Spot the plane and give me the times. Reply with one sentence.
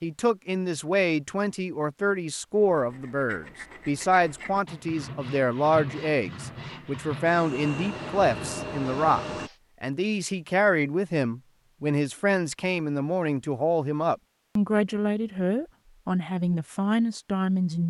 The plane can be heard from 7.2 to 9.5 s.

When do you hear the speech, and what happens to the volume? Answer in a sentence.
The speech can be heard from 0.0 to 17.8 s, at a steady volume.